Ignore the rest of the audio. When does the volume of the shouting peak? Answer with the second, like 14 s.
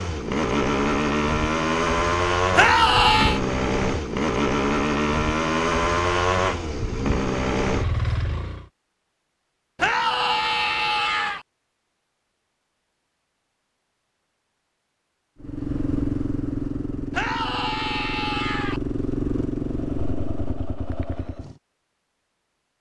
3 s.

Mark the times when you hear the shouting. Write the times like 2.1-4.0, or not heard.
2.5-3.4, 9.8-11.4, 17.1-18.8.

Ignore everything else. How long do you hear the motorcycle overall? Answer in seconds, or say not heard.
15 s.